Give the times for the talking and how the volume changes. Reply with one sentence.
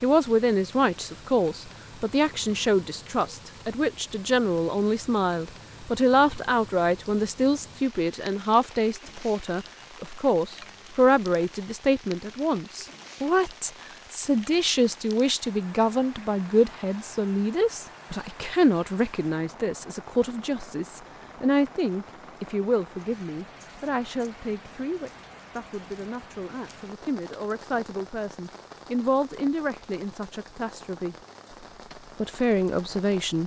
You can hear the talking from 0.0 to 31.1 s, getting quieter; and briefly from 32.1 to 33.4 s.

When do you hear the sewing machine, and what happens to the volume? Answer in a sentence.
The sewing machine can't be heard in this clip.